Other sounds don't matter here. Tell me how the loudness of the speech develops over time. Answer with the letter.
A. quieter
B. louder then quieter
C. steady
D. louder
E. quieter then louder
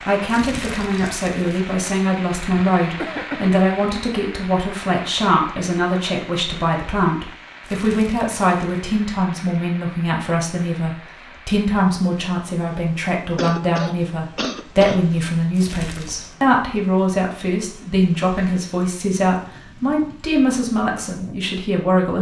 C.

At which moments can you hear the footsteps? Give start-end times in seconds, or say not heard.
not heard.